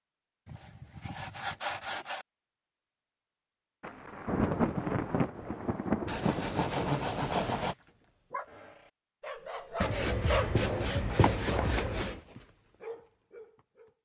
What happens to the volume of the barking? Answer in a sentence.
The loudness of the barking goes up, then down.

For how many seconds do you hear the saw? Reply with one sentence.
You can hear the saw for 6 seconds altogether.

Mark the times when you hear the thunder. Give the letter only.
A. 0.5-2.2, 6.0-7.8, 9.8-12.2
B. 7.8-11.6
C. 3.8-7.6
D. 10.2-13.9
C.